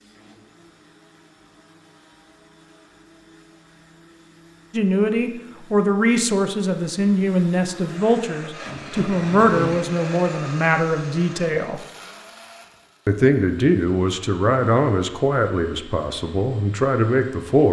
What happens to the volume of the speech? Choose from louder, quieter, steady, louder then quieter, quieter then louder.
steady.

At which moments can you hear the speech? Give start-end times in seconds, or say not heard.
4.7-11.8, 13.1-17.6.